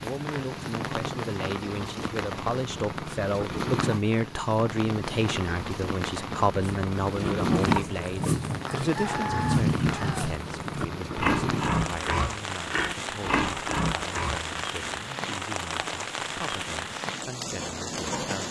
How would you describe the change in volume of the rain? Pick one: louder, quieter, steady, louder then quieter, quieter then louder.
steady.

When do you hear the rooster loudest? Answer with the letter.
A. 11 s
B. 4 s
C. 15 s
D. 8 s
D.